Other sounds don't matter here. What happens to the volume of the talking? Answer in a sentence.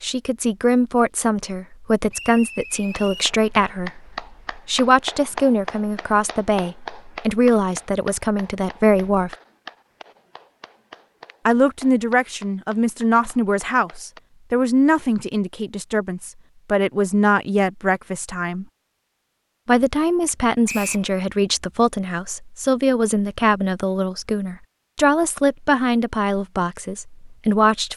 The loudness of the talking stays about the same.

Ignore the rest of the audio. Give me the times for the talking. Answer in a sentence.
You can hear the talking from 0.0 to 9.3 s, from 11.4 to 18.6 s and from 19.6 to 27.9 s.